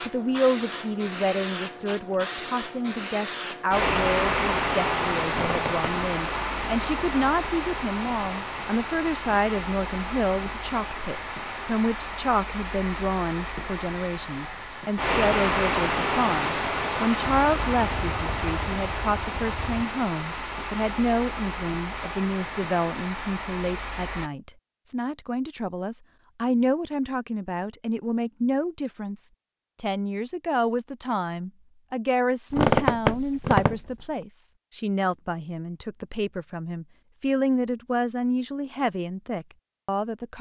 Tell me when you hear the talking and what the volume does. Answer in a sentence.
The talking can be heard from 0.0 to 40.3 s, at a steady volume.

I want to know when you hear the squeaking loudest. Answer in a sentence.
The volume of the squeaking peaks at 33 seconds.